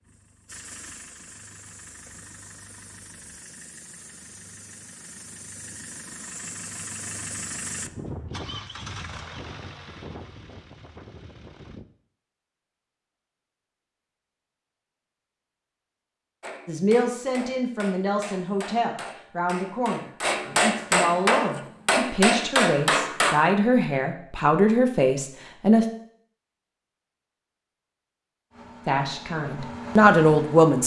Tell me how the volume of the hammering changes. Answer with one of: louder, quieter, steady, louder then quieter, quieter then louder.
louder.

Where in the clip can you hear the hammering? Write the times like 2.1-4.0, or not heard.
16.4-23.4.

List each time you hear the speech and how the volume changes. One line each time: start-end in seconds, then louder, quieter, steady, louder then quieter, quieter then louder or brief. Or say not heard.
16.6-25.9 louder
28.9-30.8 brief.